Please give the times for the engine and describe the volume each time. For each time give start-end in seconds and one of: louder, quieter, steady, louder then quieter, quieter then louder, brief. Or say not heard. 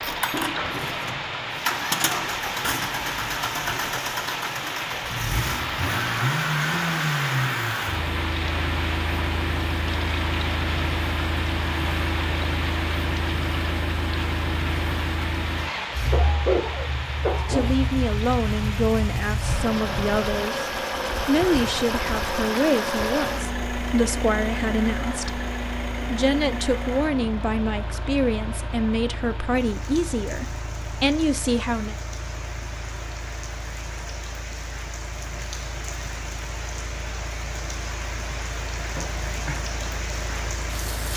0.0-41.1 quieter.